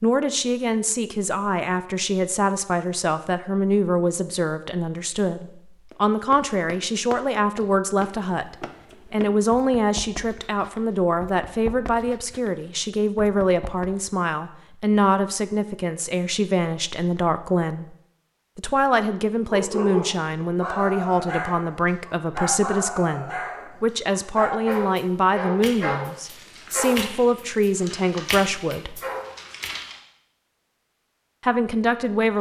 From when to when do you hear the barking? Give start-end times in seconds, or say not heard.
19.4-29.9.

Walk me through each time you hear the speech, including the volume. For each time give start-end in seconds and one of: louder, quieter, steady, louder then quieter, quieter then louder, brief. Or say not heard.
0.0-17.9 steady
18.6-29.0 steady
31.4-32.3 brief.